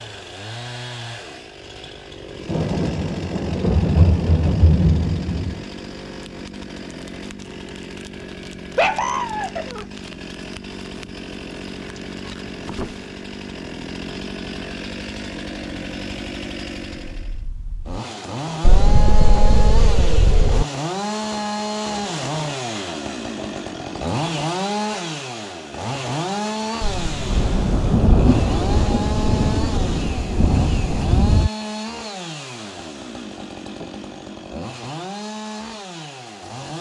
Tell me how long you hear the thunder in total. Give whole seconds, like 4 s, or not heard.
10 s.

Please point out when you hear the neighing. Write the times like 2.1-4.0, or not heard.
not heard.